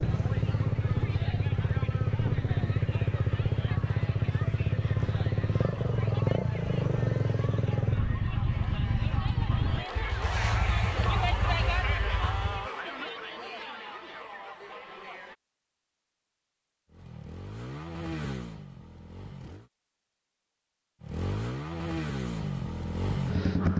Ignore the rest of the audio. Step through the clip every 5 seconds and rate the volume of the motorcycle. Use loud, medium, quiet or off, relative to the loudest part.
loud, loud, medium, medium, loud.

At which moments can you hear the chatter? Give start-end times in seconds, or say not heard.
0.0-15.3.